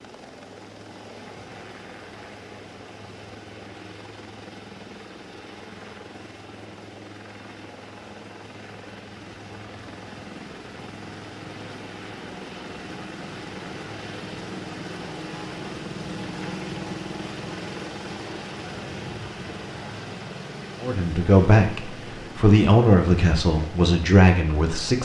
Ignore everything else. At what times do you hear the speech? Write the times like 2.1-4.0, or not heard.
20.8-25.0.